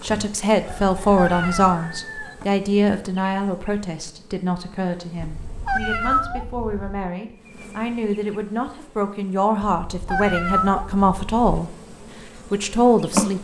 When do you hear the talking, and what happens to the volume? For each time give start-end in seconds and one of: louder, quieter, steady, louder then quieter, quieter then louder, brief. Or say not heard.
0.0-11.7 quieter then louder
12.5-13.3 brief.